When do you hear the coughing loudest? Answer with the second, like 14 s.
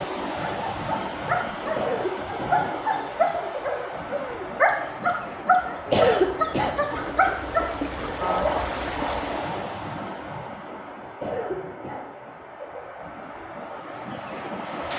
6 s.